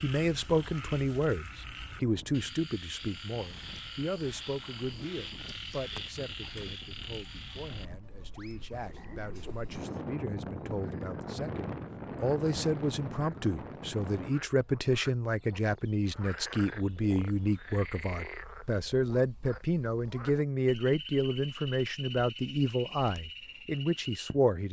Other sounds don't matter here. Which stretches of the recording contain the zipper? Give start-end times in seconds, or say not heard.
8.7-9.6.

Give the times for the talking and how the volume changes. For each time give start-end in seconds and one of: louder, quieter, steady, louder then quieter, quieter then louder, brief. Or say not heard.
0.0-24.6 quieter then louder.